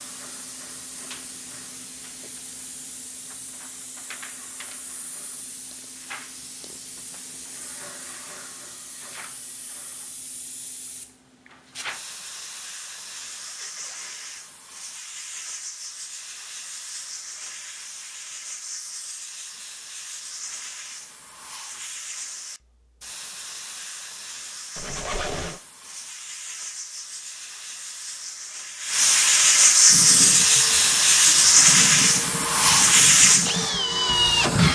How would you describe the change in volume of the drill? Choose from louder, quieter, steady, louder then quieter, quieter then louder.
louder.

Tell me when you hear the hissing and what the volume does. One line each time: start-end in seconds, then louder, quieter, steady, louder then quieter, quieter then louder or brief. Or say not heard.
0.0-34.7 louder.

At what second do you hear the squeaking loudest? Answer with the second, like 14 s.
25 s.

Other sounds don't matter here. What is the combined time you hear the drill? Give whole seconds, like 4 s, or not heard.
5 s.